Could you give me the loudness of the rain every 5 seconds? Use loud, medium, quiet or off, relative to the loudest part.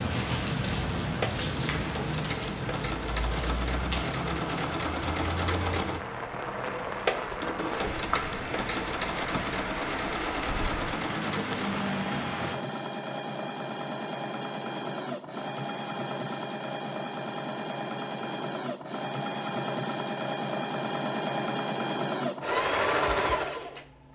loud, loud, loud, off, off.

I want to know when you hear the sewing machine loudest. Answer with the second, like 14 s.
23 s.